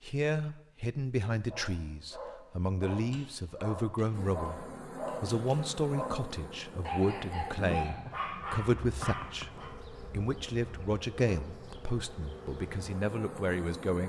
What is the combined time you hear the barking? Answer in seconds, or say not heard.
8 s.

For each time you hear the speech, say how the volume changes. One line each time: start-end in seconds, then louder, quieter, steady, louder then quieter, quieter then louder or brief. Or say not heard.
0.0-14.0 steady.